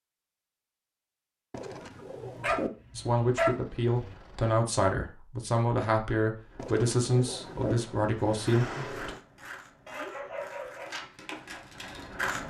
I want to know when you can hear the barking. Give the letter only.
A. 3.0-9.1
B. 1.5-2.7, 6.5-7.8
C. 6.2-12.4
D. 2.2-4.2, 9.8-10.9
D.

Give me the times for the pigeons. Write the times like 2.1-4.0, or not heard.
1.5-2.7, 6.5-7.8.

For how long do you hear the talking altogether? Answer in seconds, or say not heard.
6 s.